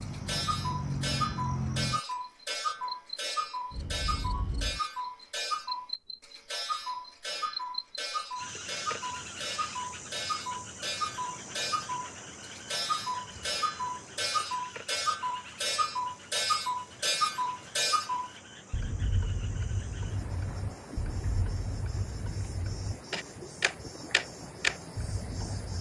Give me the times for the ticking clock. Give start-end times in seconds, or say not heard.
0.0-25.7.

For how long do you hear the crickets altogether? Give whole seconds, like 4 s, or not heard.
26 s.